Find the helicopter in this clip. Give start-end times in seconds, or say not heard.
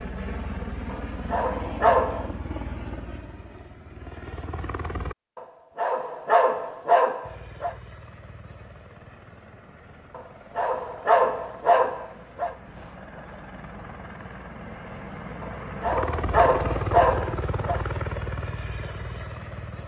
0.0-5.2, 7.2-19.8.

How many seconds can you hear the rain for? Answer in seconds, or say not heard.
not heard.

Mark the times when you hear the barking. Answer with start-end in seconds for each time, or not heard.
0.9-2.3, 5.3-7.8, 10.2-12.6, 15.4-17.8.